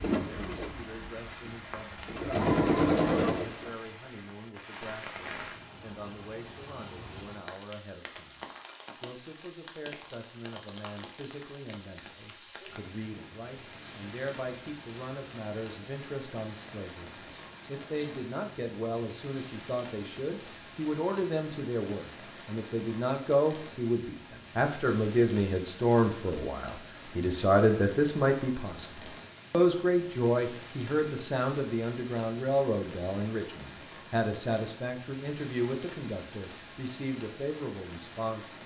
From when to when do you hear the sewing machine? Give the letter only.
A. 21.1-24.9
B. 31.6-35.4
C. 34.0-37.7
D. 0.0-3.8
D.